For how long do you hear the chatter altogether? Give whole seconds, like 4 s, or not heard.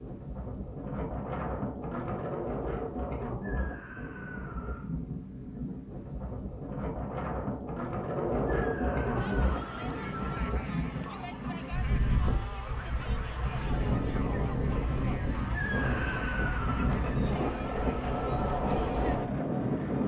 11 s.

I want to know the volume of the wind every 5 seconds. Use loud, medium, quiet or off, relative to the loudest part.
medium, loud, loud, loud.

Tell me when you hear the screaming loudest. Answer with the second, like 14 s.
16 s.